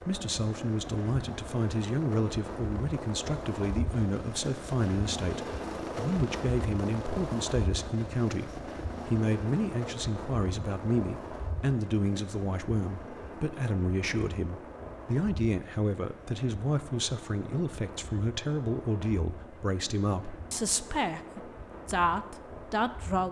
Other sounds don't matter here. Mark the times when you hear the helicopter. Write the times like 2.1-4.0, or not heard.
0.0-23.2.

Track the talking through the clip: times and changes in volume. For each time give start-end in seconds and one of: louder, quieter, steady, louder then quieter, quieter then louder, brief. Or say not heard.
0.1-23.2 steady.